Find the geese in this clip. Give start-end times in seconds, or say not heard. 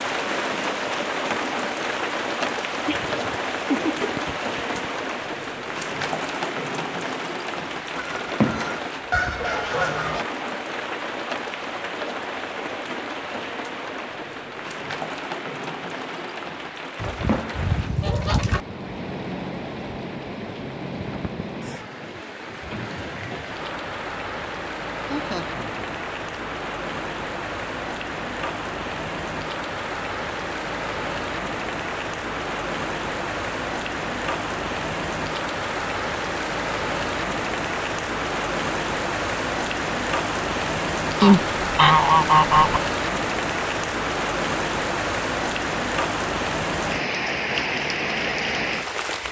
8.0-10.2, 17.0-18.6, 41.2-42.8.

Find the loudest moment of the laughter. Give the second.
4 s.